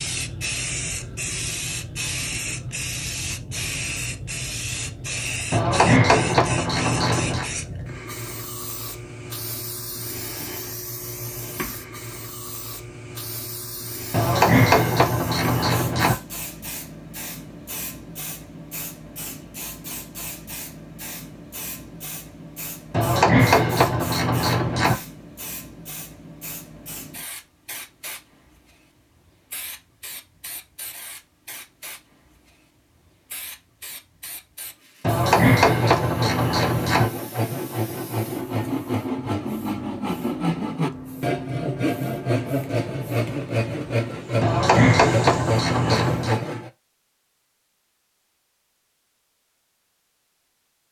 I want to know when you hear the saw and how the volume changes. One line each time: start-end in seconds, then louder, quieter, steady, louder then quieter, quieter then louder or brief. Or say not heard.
35.6-46.7 steady.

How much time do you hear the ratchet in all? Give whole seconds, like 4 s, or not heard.
10 s.